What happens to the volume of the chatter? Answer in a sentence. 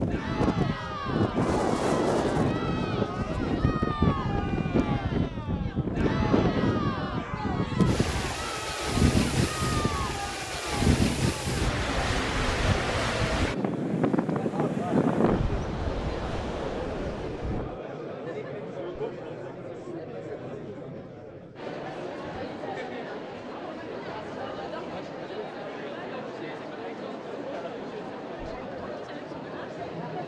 The volume of the chatter stays about the same.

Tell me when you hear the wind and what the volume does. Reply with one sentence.
You can hear the wind from 0.0 to 17.8 s, at a steady volume.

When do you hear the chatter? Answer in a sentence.
You can hear the chatter from 0.1 to 30.2 s.